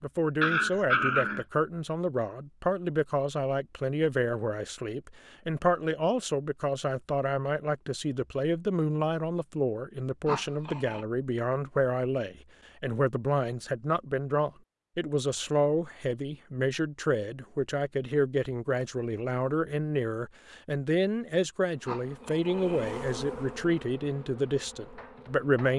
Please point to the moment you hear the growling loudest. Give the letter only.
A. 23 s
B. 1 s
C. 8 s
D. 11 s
B.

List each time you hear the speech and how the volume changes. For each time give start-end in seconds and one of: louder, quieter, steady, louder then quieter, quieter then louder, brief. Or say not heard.
0.0-25.7 steady.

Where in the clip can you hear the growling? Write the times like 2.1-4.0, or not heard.
0.4-1.4, 10.2-11.1, 21.9-23.0.